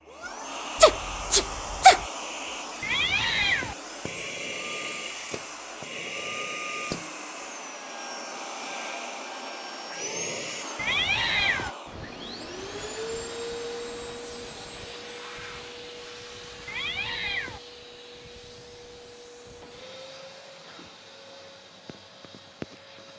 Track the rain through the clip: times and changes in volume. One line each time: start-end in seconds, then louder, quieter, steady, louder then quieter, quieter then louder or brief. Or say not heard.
not heard.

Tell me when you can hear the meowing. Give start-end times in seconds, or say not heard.
2.8-3.8, 10.8-11.7, 16.6-17.6.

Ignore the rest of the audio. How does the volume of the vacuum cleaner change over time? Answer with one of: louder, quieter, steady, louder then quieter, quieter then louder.
quieter.